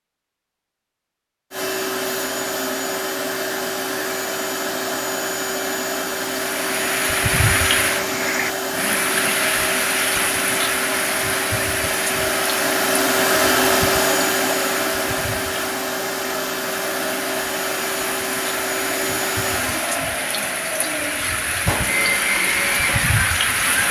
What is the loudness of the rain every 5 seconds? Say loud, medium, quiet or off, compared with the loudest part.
off, loud, loud, medium, loud.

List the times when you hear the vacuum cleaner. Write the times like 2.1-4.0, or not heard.
1.5-23.8.